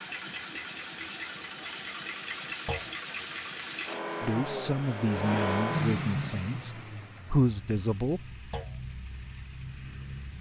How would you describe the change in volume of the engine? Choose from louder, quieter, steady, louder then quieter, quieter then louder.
louder then quieter.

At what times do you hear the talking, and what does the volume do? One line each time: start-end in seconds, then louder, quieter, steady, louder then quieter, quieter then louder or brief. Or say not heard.
4.2-8.2 quieter then louder.